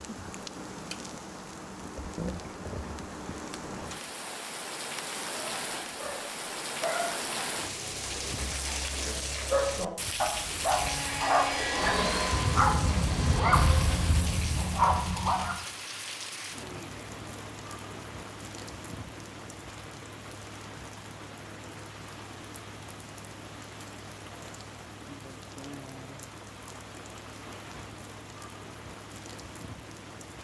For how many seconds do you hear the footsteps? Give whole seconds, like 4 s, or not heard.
not heard.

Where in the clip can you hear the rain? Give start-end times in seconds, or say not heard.
0.0-30.3.